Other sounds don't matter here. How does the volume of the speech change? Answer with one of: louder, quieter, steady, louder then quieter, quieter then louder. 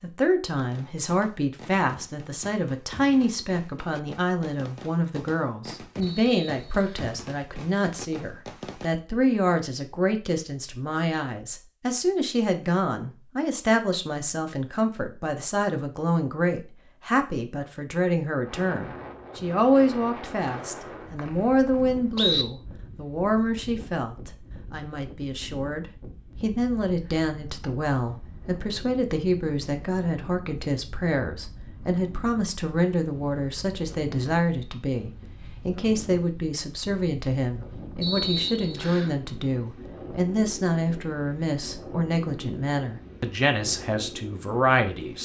steady.